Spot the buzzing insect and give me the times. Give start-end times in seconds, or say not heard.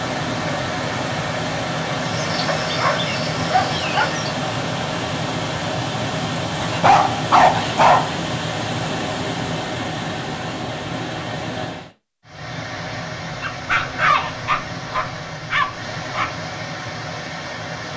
2.0-4.3.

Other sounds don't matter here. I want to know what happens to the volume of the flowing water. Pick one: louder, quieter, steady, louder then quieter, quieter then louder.
quieter.